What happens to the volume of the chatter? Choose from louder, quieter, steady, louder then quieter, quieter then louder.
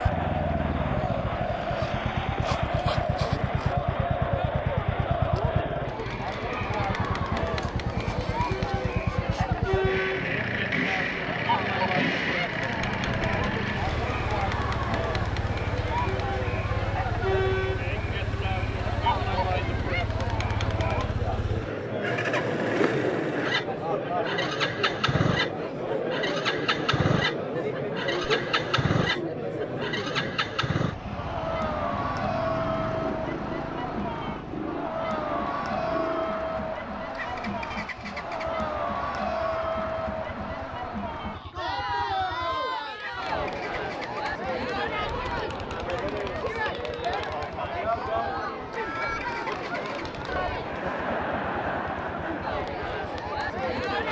steady.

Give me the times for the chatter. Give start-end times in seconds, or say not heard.
0.0-54.0.